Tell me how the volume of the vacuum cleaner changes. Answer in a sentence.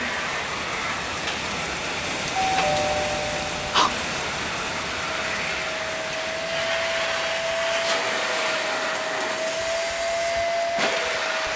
The loudness of the vacuum cleaner goes up.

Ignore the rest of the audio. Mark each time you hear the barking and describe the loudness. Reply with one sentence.
You can't hear the barking here.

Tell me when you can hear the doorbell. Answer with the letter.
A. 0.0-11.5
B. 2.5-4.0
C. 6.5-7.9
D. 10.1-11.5
B.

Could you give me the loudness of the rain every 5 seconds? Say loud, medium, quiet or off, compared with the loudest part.
loud, medium, medium.